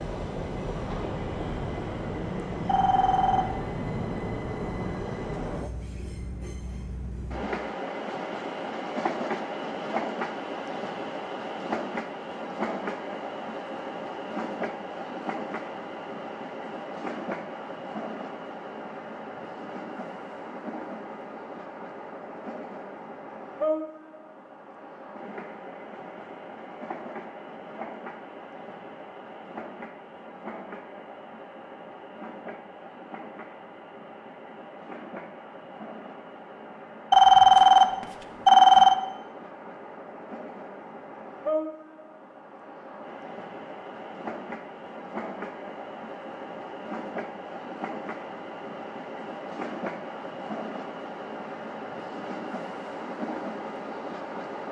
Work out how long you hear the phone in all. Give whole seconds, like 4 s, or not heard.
3 s.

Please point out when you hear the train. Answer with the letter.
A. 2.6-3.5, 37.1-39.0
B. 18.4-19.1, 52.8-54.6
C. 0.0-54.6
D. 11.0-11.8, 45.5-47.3
C.